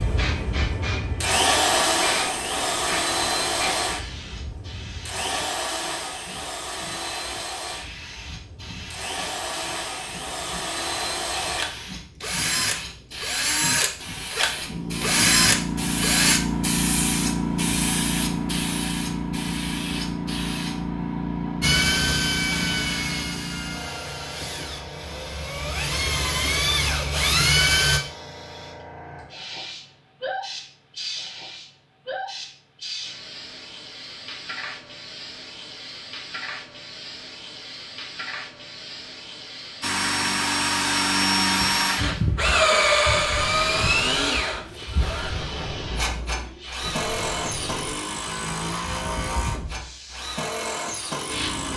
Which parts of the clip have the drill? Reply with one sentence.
You can hear the drill from 0.0 to 16.4 s, from 21.6 to 28.0 s and from 39.8 to 51.7 s.